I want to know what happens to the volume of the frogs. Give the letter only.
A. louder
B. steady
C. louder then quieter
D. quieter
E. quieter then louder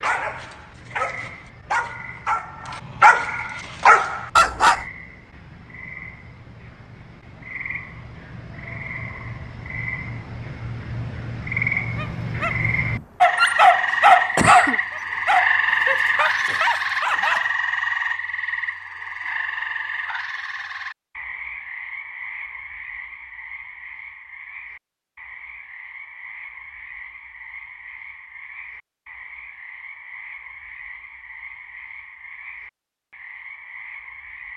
C.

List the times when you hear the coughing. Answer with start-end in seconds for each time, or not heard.
13.9-14.8.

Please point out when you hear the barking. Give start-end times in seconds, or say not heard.
0.0-4.8, 11.9-17.5.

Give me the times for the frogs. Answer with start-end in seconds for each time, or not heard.
0.0-34.5.